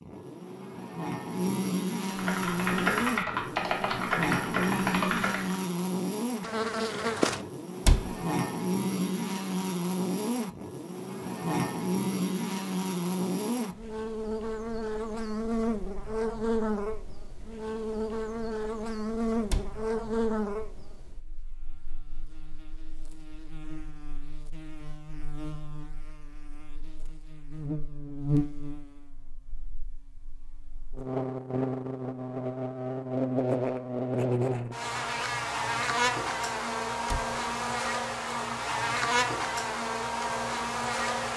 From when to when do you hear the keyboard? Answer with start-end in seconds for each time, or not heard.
2.1-5.7.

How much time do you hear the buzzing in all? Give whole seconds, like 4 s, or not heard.
41 s.